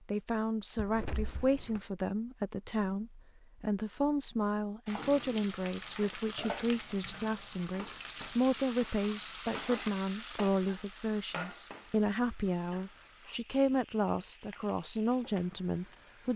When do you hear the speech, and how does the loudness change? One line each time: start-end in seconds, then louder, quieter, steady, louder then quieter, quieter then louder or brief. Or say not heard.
0.1-16.3 steady.